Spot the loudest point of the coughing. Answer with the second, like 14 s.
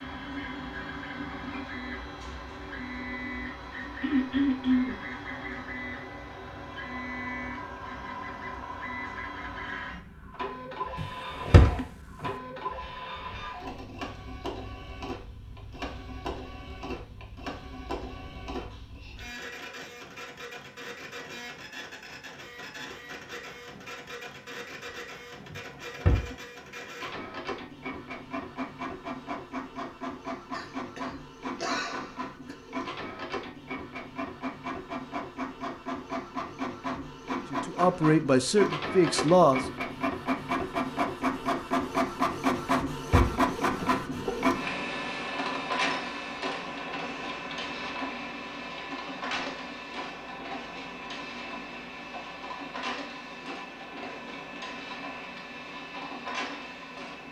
5 s.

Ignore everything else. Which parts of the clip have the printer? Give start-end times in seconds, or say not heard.
0.0-57.2.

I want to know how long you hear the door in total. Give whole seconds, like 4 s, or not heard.
3 s.